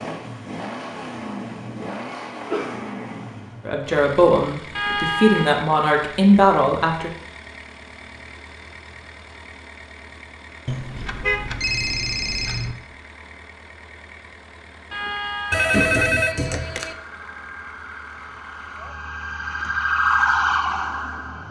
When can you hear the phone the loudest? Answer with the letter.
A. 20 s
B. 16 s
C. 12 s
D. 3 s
B.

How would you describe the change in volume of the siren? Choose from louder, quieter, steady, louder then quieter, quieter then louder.
louder.